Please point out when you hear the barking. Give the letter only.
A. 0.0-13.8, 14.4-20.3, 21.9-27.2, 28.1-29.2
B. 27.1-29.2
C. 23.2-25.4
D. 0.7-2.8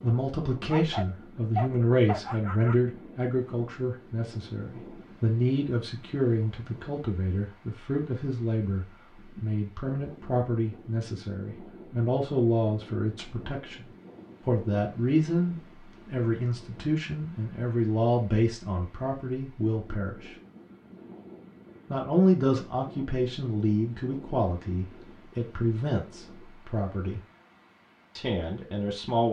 D.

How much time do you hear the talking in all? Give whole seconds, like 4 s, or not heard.
26 s.